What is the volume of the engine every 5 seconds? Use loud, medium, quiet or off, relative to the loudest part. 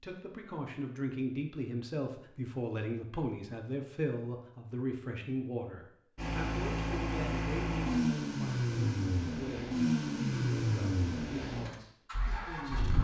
off, loud, loud.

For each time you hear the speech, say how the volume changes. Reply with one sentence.
The speech can be heard from 0.0 to 13.0 s, getting quieter.